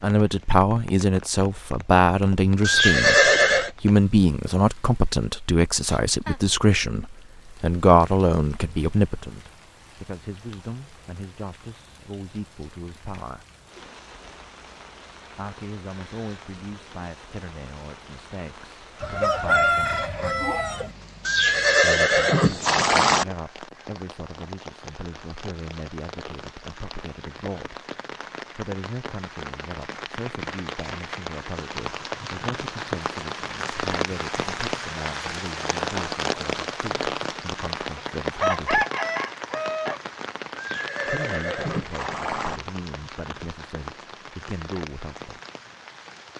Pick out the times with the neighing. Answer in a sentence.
You can hear the neighing from 2.6 to 3.7 s, from 21.2 to 23.2 s and from 40.5 to 42.6 s.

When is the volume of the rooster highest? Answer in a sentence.
The loudest moment of the rooster is at 20 seconds.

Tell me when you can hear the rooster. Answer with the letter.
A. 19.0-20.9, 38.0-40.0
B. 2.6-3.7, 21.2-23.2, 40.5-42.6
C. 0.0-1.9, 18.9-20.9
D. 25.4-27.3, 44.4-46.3
A.